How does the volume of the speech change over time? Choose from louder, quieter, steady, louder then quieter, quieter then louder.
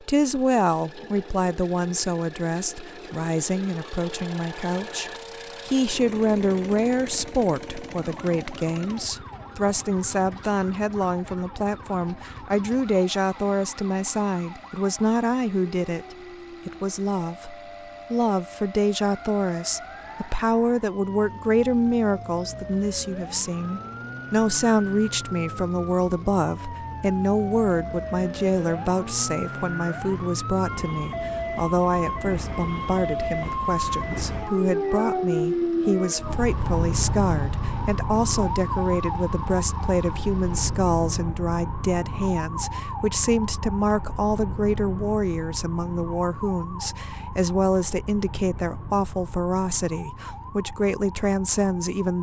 steady.